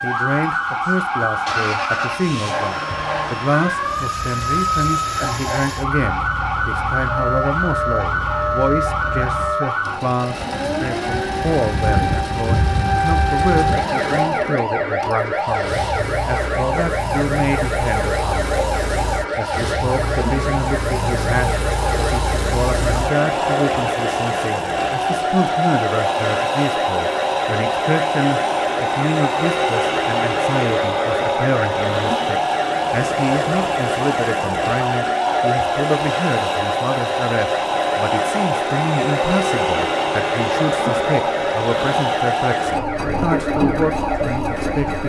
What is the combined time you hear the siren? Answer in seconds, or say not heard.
45 s.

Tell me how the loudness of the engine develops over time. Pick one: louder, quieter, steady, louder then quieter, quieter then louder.
louder.